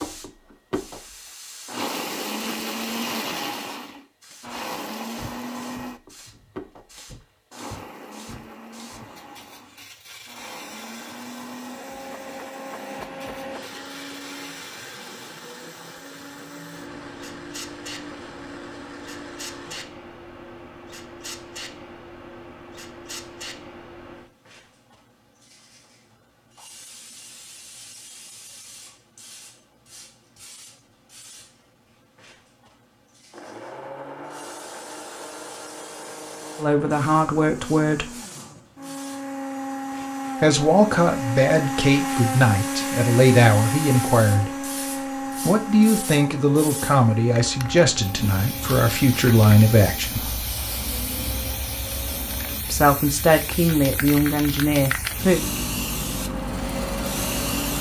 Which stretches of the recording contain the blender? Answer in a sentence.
You can hear the blender from 0.0 to 19.9 s, from 33.3 to 52.6 s and from 55.4 to 57.7 s.